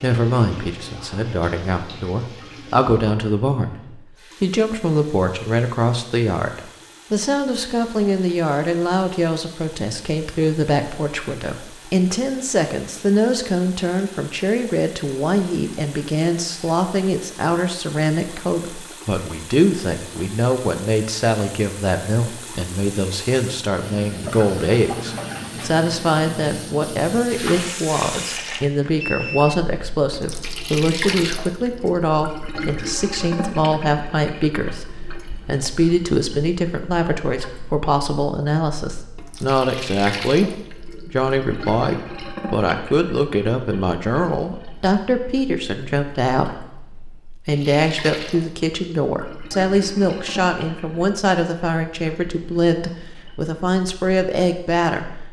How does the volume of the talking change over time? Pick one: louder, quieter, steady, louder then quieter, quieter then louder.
steady.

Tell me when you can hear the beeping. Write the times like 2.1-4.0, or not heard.
28.9-29.6.